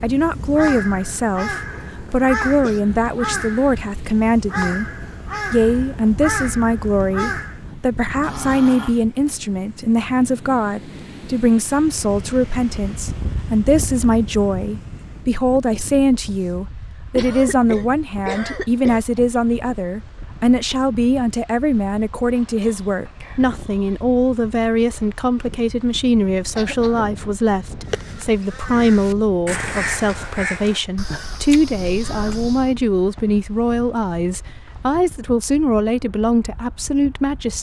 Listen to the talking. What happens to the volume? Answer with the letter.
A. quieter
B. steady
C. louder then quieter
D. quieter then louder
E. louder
B.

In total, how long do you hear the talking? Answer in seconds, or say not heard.
37 s.